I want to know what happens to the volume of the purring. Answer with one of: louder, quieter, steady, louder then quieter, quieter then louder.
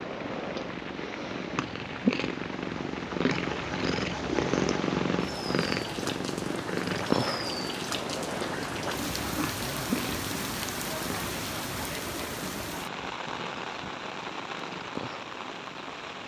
quieter.